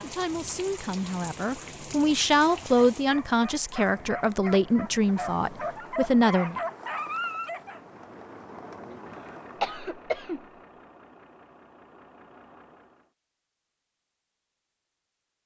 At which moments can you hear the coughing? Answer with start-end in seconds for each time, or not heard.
8.9-10.4.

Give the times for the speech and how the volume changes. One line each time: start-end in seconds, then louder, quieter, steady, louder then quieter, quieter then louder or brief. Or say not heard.
0.0-6.6 louder.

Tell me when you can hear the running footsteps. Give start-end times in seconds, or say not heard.
not heard.